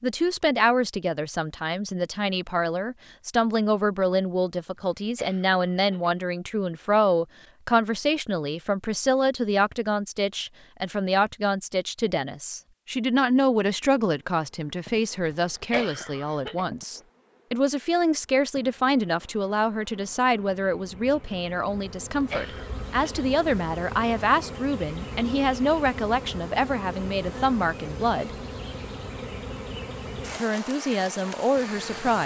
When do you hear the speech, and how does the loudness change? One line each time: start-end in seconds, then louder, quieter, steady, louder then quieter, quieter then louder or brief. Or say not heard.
0.0-28.3 steady
30.4-32.2 brief.